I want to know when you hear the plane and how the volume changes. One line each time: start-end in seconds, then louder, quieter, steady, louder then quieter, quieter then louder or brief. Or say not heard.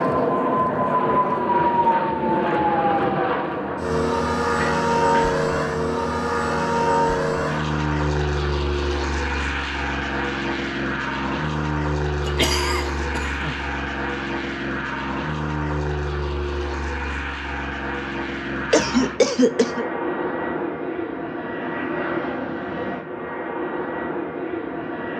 0.0-25.1 quieter.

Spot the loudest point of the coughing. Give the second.
19 s.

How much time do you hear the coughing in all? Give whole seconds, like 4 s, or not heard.
3 s.